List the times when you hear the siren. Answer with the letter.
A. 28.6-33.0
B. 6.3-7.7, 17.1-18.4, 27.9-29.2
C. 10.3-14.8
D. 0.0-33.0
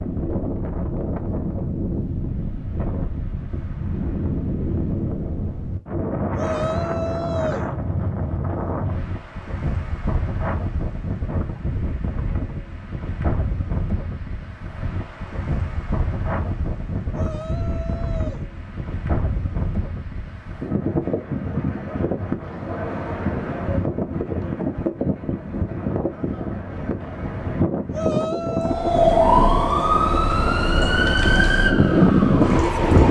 A.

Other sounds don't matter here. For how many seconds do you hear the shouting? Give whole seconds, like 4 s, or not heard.
4 s.